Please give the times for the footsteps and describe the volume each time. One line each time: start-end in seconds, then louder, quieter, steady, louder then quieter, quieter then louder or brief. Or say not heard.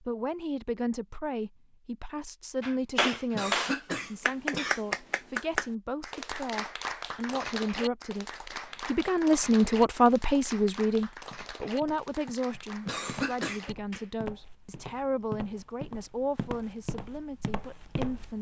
11.2-18.3 louder.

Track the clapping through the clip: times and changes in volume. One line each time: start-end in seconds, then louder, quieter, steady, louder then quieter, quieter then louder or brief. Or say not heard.
2.6-14.2 quieter.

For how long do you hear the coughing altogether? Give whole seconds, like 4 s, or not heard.
2 s.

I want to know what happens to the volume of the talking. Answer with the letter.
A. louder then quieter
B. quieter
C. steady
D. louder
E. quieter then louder
A.